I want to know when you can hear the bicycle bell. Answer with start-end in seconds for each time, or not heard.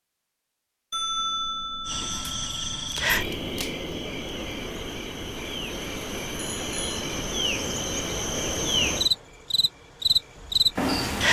0.9-2.9, 6.3-7.0.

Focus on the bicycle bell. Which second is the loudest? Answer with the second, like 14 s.
1 s.